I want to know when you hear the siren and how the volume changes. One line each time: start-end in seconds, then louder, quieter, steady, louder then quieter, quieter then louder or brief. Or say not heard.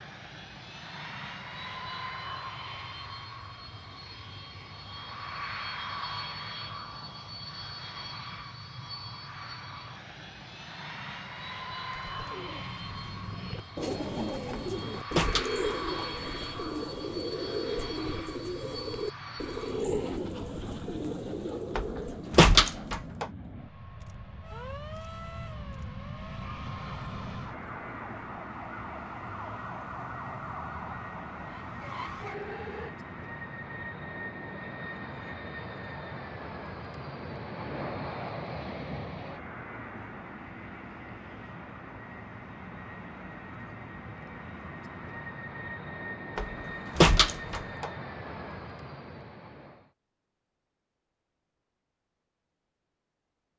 24.4-33.0 louder.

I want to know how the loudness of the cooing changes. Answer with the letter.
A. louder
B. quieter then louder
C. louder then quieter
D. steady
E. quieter
D.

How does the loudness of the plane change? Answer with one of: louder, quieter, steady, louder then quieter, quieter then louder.
steady.